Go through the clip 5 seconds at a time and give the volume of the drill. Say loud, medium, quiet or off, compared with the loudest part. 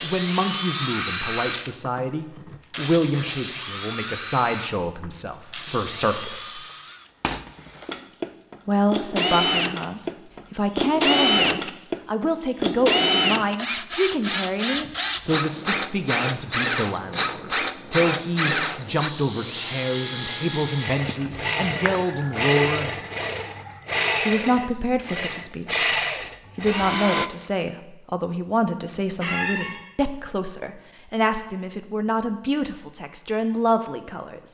medium, medium, loud, loud, loud, loud, off.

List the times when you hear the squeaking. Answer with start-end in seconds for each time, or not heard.
29.2-29.8.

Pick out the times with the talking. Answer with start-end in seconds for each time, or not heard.
0.0-6.6, 8.7-22.9, 24.2-25.9, 26.6-34.4.